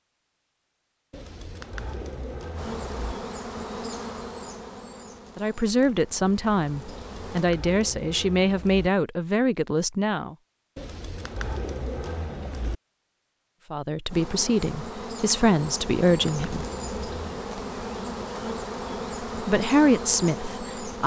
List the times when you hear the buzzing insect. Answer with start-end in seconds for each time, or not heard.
2.5-7.5, 14.1-21.0.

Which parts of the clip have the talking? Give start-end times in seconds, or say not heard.
5.3-10.3, 13.7-16.6, 19.4-21.0.